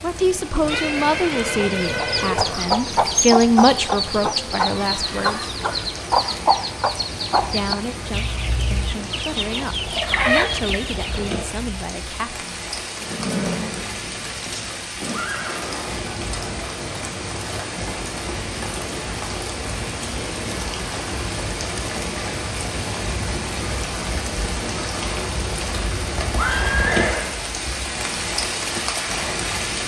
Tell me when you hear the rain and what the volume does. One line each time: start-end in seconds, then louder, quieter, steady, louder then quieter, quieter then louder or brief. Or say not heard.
0.0-29.8 louder.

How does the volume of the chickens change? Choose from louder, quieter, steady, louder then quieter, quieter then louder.
quieter then louder.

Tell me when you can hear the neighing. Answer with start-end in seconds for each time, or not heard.
0.6-2.6, 13.0-15.7, 26.4-27.3.